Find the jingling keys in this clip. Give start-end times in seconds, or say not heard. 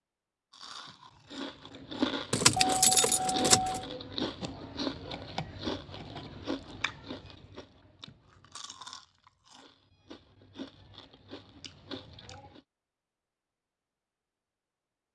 2.3-3.9.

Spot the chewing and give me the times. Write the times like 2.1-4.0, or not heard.
0.5-12.6.